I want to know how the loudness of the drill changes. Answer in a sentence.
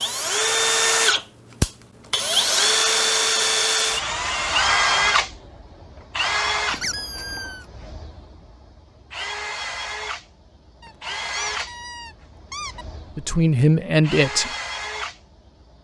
The loudness of the drill goes down.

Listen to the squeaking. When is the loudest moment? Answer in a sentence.
The loudest moment of the squeaking is at 7 seconds.